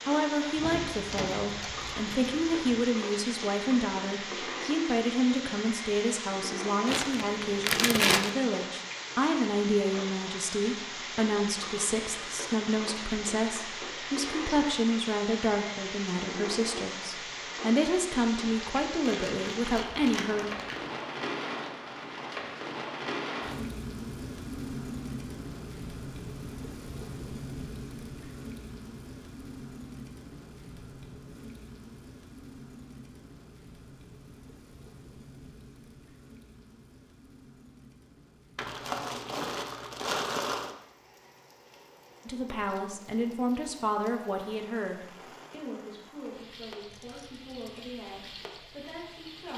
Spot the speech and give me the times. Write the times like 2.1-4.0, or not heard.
0.1-20.4, 42.2-49.5.